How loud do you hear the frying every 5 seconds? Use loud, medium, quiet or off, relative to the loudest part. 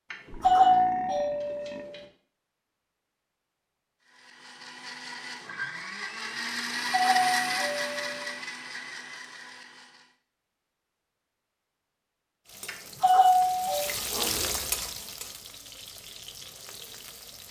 off, off, loud, medium.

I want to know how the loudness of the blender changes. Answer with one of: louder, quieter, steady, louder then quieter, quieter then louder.
louder then quieter.